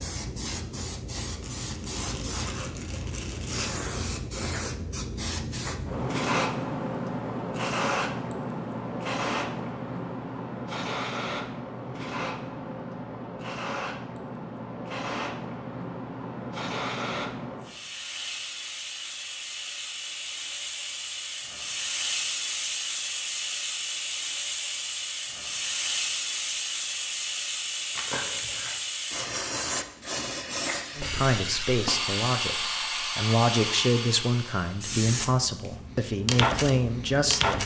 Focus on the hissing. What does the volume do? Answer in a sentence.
The volume of the hissing stays about the same.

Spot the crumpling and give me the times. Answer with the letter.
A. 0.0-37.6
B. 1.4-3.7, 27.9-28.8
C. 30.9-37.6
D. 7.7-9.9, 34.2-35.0
B.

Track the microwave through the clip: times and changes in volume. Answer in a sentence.
The microwave can't be heard in this clip.